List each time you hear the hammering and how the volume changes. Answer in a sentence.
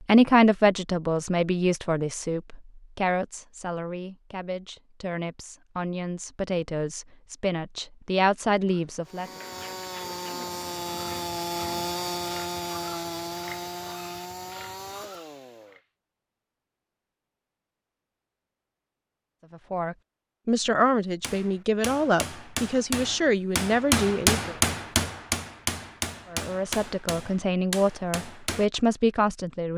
You can hear the hammering from 21.2 to 28.7 s, getting louder then quieter.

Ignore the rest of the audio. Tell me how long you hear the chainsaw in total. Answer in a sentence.
You can hear the chainsaw for 7 seconds altogether.